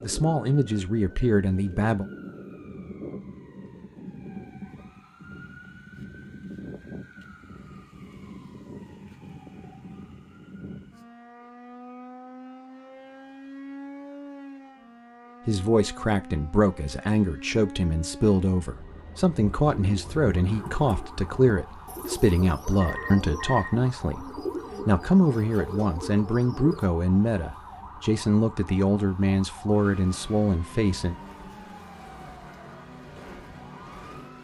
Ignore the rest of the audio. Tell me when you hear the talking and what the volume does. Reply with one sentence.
The talking can be heard briefly from 0.0 to 2.0 s; and from 15.4 to 31.1 s, at a steady volume.